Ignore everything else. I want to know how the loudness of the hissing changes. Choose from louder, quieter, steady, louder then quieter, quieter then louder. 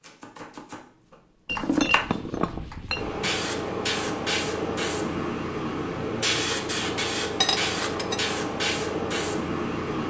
steady.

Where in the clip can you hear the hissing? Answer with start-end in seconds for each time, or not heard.
2.9-10.0.